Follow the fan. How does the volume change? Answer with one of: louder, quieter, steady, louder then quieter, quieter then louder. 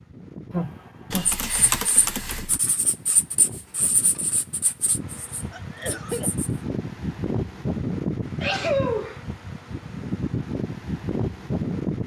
louder.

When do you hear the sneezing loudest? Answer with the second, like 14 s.
9 s.